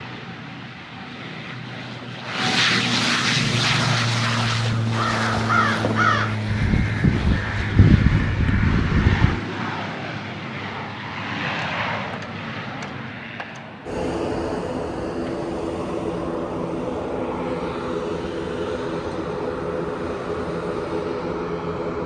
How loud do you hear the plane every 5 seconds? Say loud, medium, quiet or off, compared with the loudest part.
loud, loud, medium, loud, loud.